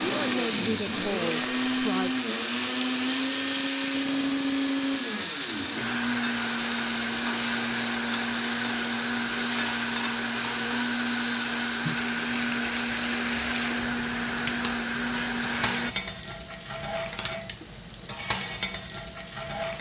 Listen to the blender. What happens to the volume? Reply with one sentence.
The loudness of the blender stays about the same.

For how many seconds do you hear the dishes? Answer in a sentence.
You can't hear the dishes here.